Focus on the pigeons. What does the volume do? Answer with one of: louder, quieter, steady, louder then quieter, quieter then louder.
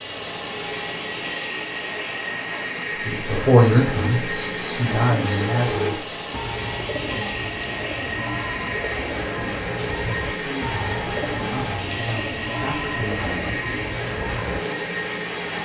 steady.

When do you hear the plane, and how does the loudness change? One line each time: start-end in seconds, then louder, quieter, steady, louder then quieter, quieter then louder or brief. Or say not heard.
0.0-15.6 steady.